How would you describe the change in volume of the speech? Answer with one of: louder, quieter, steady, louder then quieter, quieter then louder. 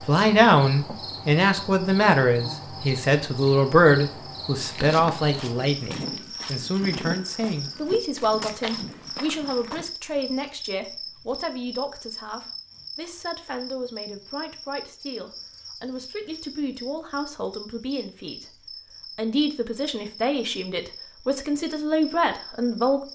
quieter then louder.